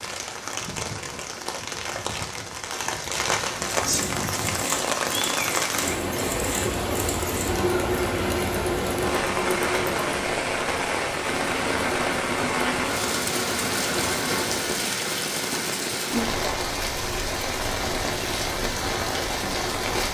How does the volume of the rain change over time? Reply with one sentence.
The volume of the rain stays about the same.